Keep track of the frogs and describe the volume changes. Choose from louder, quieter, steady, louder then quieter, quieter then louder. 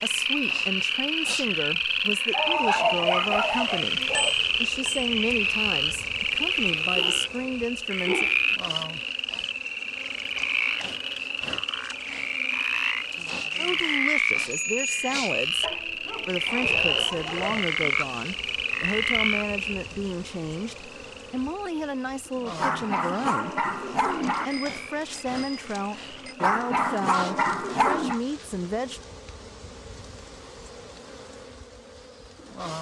quieter.